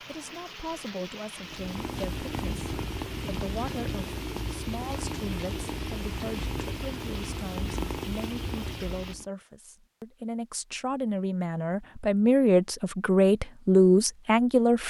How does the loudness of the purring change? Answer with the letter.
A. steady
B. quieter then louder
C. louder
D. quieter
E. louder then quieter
A.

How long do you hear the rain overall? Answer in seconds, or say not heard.
9 s.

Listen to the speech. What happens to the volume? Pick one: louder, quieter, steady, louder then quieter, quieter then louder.
louder.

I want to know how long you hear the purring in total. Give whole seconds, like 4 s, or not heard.
8 s.